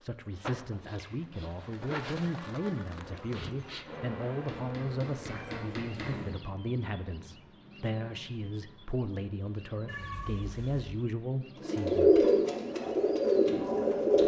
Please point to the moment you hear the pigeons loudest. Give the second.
12 s.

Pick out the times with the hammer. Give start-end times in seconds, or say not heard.
4.5-6.2.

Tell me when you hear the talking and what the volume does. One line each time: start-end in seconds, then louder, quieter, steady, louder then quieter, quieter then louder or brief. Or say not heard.
0.0-12.3 steady.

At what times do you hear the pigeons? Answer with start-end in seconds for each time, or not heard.
11.6-14.2.